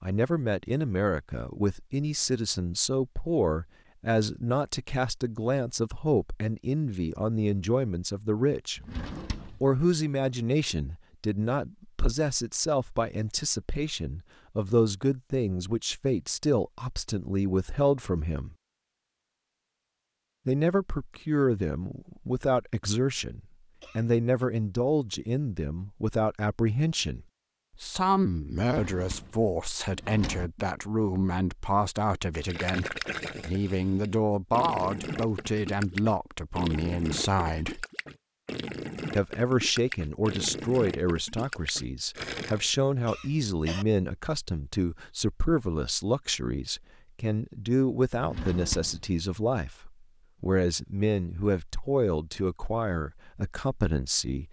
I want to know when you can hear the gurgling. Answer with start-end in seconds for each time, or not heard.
32.5-42.7.